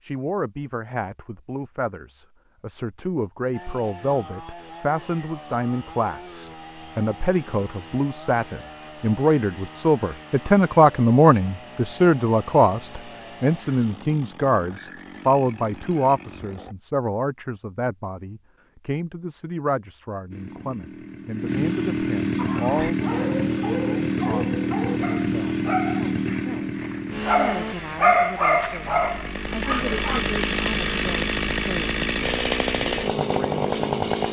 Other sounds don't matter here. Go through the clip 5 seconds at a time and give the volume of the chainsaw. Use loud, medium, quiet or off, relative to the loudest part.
quiet, quiet, quiet, quiet, loud, loud, loud.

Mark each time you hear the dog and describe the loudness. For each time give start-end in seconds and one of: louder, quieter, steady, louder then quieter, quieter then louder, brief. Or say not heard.
22.4-30.2 louder.